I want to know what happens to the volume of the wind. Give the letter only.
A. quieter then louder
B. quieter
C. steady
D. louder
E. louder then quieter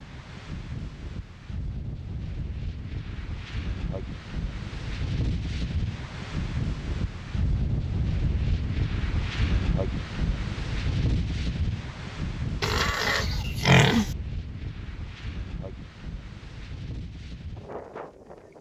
E.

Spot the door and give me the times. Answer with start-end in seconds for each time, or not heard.
not heard.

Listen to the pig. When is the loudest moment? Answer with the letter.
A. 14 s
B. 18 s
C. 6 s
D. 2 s
A.